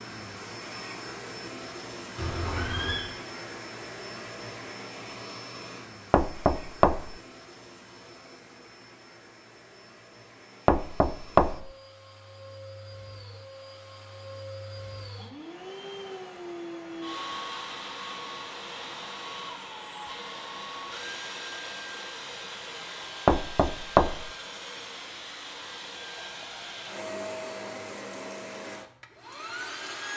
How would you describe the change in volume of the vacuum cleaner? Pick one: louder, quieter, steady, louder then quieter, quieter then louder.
quieter then louder.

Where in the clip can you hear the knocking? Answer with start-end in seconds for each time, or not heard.
6.1-7.2, 10.7-11.7, 23.2-24.3.